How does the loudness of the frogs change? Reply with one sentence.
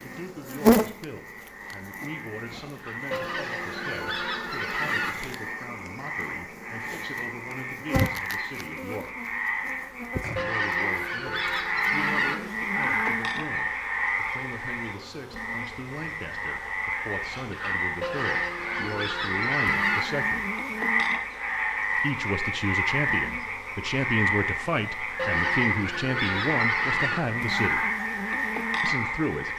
The volume of the frogs goes up.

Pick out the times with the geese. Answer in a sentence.
You can hear the geese from 3.1 to 5.1 s, from 10.3 to 12.3 s, from 18.0 to 20.0 s and from 25.1 to 27.2 s.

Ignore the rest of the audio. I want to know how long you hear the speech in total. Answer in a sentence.
You can hear the speech for 26 seconds altogether.